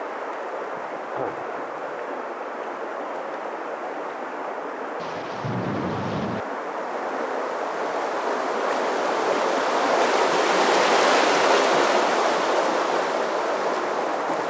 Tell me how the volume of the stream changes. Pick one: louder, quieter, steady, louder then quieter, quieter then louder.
louder.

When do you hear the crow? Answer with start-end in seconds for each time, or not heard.
not heard.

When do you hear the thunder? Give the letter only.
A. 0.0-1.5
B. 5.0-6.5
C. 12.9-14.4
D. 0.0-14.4
B.